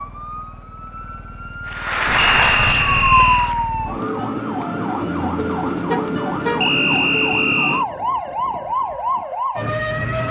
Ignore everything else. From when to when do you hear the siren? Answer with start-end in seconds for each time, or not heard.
0.0-10.2.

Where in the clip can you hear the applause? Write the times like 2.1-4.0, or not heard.
1.6-3.8.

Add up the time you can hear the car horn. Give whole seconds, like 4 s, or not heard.
2 s.